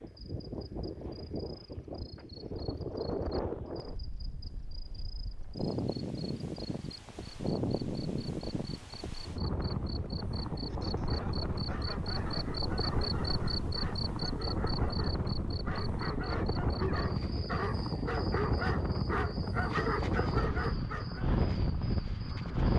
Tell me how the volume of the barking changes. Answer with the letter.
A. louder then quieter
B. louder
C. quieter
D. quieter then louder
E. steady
B.